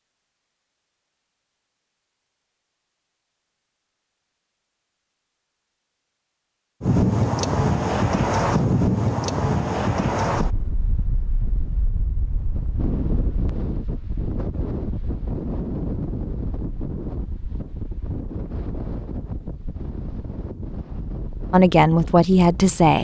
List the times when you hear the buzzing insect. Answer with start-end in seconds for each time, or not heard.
not heard.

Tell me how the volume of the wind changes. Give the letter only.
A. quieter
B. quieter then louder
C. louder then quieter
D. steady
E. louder
A.